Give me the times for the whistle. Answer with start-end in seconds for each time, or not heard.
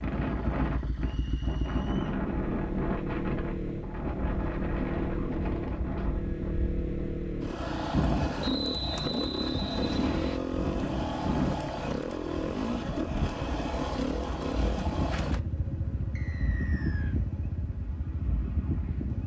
1.0-2.2, 8.4-10.4, 16.1-17.1.